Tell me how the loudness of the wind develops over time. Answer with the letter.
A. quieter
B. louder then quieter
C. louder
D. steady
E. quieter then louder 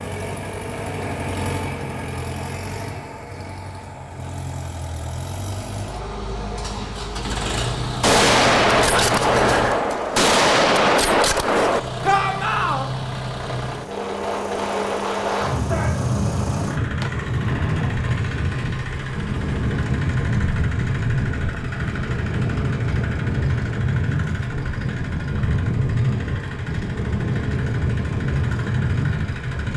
D.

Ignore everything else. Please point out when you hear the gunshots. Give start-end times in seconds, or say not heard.
8.0-11.8, 17.0-17.9.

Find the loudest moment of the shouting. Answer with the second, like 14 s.
12 s.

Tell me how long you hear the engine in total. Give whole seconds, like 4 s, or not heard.
28 s.